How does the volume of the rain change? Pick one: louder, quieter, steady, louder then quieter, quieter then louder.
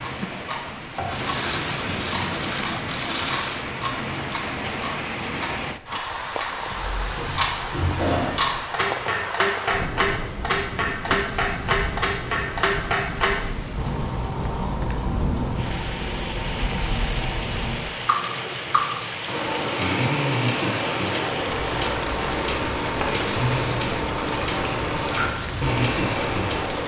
steady.